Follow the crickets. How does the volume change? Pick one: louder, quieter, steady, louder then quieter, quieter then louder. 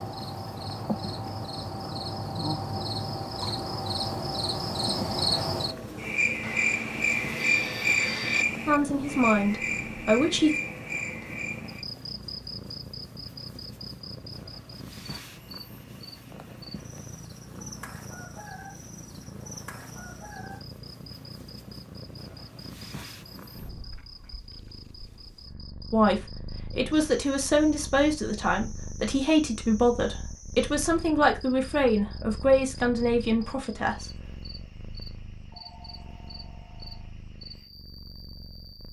quieter.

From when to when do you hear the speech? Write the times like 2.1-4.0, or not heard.
8.7-10.5, 25.9-34.1.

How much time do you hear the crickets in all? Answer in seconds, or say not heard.
39 s.